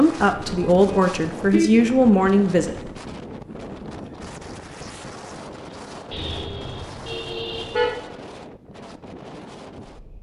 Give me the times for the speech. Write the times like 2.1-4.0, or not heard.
0.0-2.8.